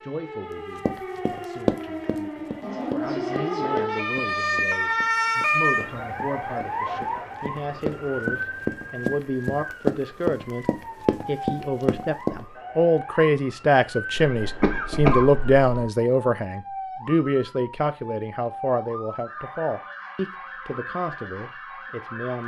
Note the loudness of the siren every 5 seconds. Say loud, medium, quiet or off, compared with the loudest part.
loud, loud, medium, medium, medium.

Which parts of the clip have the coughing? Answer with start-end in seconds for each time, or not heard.
14.2-15.8.